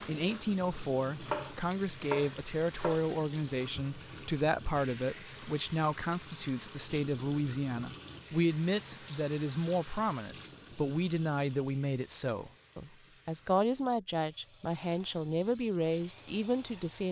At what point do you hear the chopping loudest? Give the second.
1 s.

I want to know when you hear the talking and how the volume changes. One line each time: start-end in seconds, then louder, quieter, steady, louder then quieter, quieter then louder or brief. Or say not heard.
0.1-17.0 steady.